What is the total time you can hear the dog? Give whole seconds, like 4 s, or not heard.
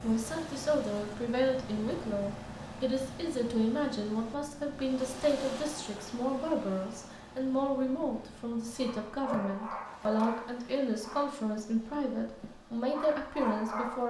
5 s.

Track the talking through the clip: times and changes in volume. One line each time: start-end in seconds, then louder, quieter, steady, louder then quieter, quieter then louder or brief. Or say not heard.
0.0-14.0 steady.